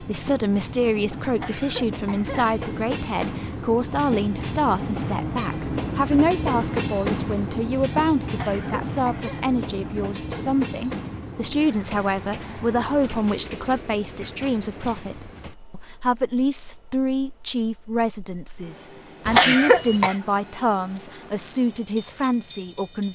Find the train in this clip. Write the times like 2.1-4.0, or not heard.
0.0-23.1.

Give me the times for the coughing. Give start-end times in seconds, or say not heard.
1.3-2.5, 8.2-9.4, 19.2-20.1.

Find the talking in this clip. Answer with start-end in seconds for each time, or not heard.
0.0-23.1.